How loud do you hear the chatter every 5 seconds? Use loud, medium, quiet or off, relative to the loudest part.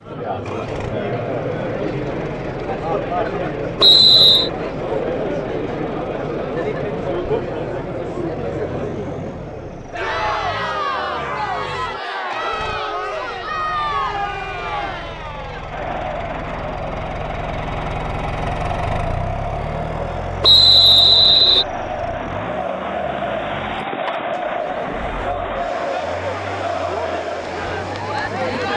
loud, loud, loud, medium, loud, loud.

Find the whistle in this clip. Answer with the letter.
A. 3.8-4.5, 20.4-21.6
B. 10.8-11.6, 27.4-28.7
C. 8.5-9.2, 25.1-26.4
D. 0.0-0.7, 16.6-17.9
A.